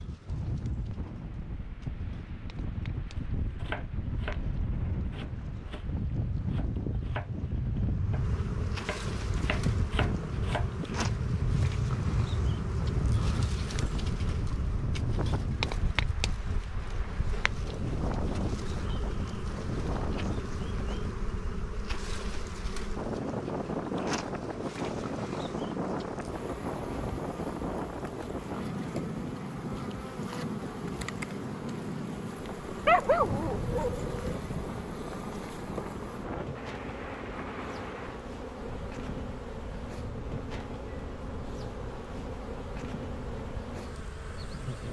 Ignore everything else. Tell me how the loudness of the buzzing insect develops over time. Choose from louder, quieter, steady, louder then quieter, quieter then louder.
louder.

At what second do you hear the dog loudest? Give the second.
33 s.